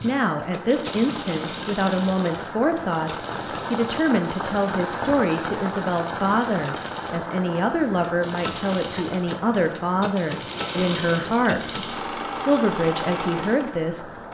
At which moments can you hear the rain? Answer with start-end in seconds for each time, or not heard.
0.0-14.3.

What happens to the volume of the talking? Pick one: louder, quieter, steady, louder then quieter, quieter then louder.
steady.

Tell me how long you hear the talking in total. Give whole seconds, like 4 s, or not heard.
14 s.